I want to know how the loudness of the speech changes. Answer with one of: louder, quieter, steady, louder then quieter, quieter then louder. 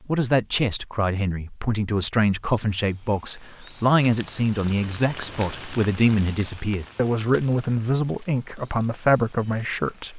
steady.